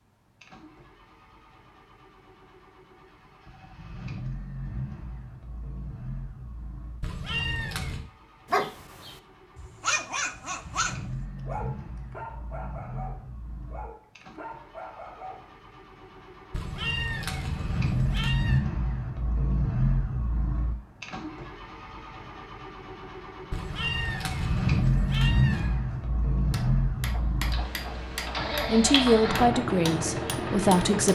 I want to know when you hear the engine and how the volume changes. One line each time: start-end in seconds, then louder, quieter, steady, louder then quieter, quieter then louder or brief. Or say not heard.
0.4-31.0 louder.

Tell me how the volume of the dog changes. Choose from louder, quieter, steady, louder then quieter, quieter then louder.
quieter.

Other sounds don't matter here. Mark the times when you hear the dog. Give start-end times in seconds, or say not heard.
8.5-15.5.